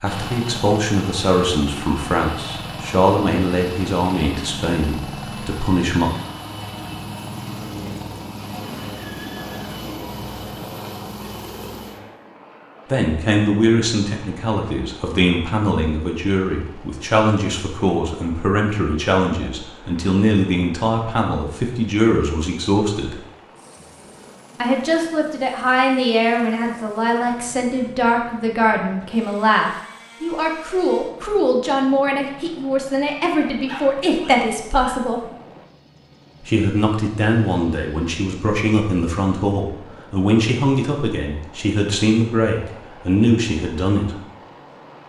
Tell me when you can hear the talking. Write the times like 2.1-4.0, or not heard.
0.0-6.1, 12.9-23.2, 24.6-35.2, 36.4-44.2.